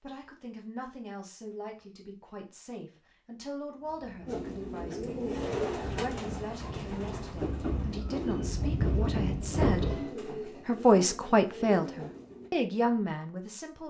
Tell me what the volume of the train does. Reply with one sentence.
The volume of the train goes up.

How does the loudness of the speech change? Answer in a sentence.
The loudness of the speech goes up.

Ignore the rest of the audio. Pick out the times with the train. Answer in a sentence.
The train can be heard from 3.9 to 10.2 s.